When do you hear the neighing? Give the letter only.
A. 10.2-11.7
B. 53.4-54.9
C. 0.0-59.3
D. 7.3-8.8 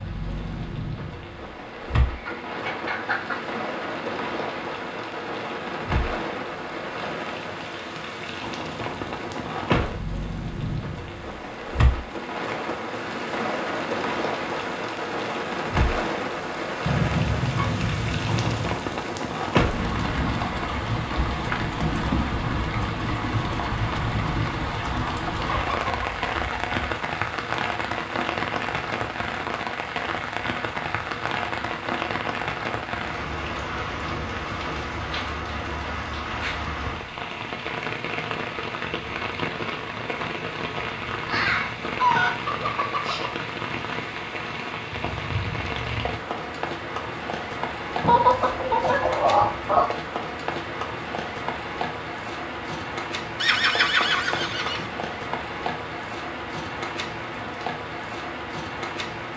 B.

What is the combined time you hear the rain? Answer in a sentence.
You can hear the rain for 59 seconds altogether.